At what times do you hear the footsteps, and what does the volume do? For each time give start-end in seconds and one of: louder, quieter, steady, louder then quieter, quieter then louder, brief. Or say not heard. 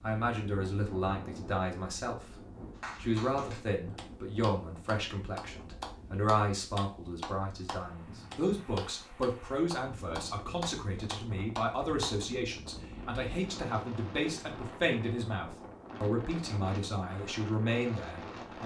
not heard.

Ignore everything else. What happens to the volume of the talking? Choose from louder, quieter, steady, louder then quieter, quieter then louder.
steady.